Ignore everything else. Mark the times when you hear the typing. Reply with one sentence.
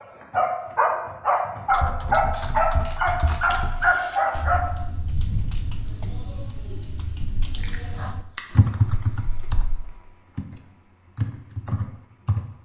The typing can be heard from 1.7 to 9.7 s and from 10.3 to 12.4 s.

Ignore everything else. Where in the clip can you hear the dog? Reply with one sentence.
The dog can be heard from 0.0 to 4.6 s.